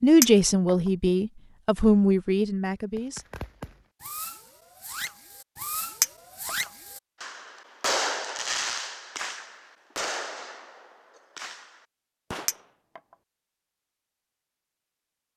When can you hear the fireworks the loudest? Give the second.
8 s.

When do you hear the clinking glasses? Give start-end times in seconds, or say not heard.
0.2-0.8, 6.0-6.5, 12.4-13.0.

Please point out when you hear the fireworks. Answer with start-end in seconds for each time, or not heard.
3.0-12.7.